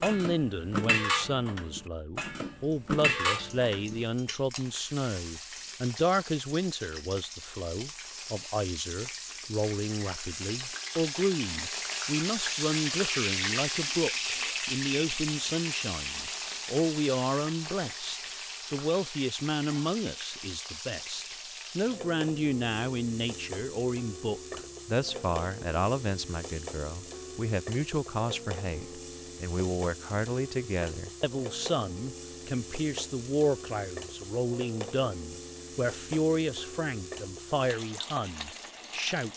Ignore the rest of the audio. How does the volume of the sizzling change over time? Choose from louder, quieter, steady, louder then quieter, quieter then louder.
louder then quieter.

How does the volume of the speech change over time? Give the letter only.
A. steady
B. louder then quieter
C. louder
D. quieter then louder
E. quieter
A.